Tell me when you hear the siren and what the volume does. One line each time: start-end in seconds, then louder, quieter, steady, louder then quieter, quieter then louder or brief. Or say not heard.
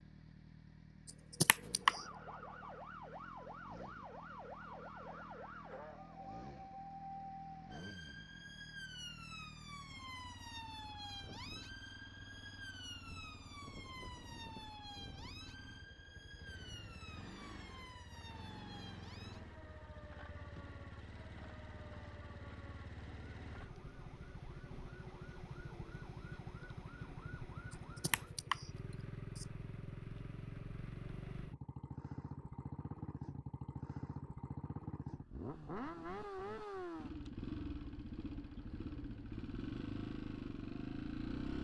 1.8-28.4 quieter.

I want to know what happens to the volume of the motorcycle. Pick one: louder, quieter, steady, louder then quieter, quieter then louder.
louder.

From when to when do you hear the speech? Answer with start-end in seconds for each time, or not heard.
not heard.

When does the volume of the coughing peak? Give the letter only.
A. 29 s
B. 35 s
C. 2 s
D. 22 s
C.